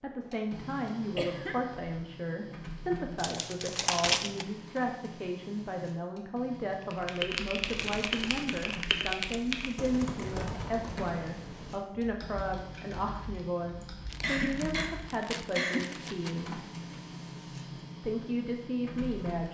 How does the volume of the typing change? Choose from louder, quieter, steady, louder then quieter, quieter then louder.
quieter.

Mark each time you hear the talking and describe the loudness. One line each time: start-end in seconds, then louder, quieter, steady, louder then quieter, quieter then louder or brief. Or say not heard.
0.0-16.6 steady
18.0-19.5 brief.